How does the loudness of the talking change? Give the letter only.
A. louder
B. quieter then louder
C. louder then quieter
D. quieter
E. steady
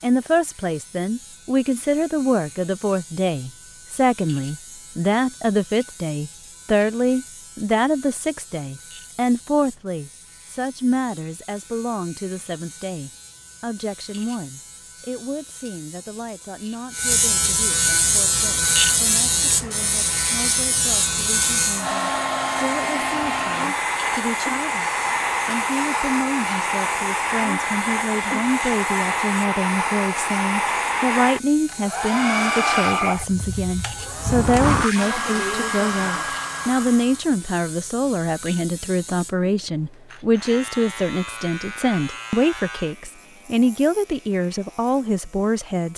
B.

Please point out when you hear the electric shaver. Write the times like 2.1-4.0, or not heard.
0.0-45.9.